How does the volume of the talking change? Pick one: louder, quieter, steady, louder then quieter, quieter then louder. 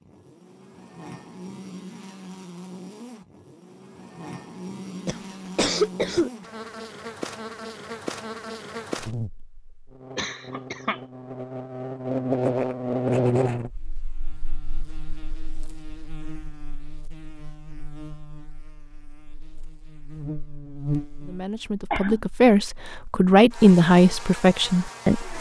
louder then quieter.